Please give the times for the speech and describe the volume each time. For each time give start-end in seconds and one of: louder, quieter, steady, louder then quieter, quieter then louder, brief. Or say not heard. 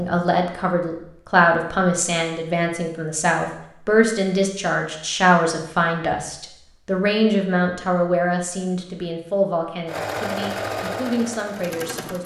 0.0-12.2 quieter.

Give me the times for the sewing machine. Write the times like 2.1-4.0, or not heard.
9.8-12.2.